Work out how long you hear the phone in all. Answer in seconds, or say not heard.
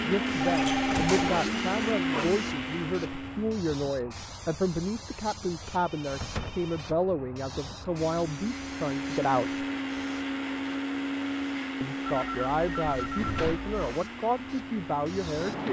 4 s.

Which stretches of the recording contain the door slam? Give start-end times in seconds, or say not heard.
0.6-1.4, 6.2-6.7, 13.0-13.7.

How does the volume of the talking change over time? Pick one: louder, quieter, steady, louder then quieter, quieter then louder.
steady.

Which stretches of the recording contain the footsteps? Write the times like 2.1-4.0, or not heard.
not heard.